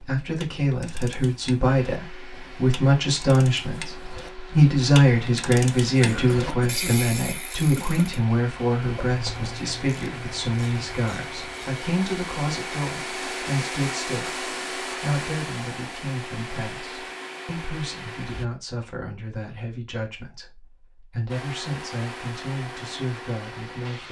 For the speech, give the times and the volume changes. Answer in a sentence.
You can hear the speech from 0.0 to 24.0 s, getting quieter.